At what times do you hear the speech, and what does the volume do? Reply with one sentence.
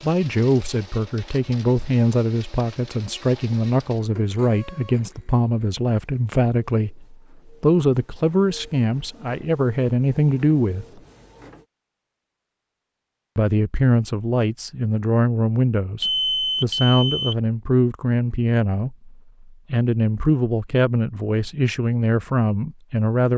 The speech can be heard from 0.0 to 11.0 s, at a steady volume; and from 13.3 to 23.3 s, at a steady volume.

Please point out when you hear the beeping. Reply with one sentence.
You can hear the beeping from 16.0 to 17.4 s.